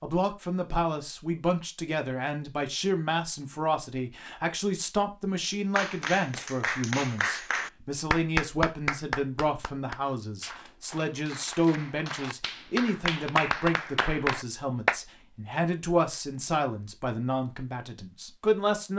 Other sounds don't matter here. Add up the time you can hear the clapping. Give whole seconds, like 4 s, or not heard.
9 s.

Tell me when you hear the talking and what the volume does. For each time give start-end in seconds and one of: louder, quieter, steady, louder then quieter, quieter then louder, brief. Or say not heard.
0.0-18.9 steady.